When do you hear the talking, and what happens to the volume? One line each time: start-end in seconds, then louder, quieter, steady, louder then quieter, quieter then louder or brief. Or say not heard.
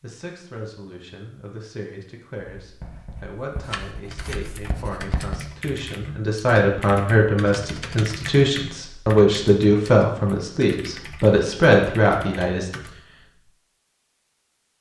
0.0-12.7 louder.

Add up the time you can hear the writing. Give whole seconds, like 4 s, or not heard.
3 s.